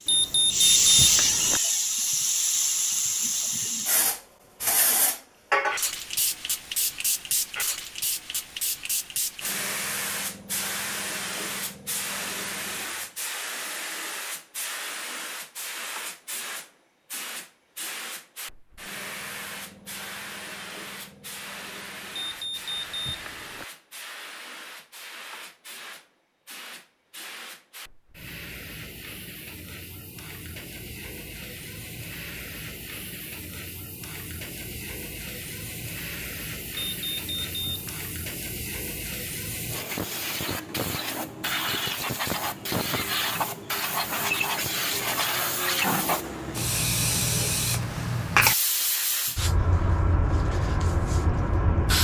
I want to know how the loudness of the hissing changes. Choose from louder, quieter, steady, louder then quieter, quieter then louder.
quieter then louder.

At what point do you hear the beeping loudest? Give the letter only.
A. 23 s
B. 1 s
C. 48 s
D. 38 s
B.